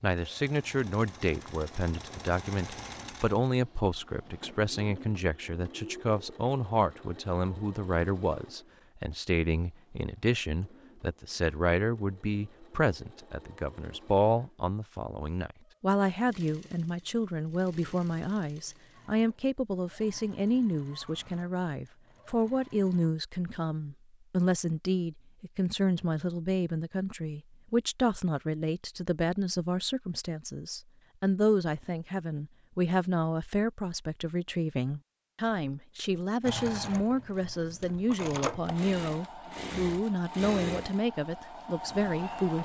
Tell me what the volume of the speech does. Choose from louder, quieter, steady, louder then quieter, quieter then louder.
steady.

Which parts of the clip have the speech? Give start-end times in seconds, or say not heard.
0.0-42.6.